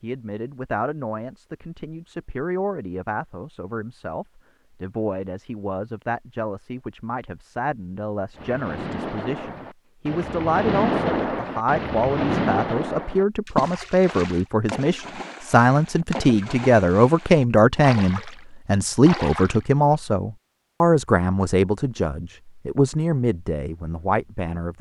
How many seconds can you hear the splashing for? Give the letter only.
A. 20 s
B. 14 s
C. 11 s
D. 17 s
C.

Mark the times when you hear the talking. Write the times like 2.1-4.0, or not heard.
0.0-24.7.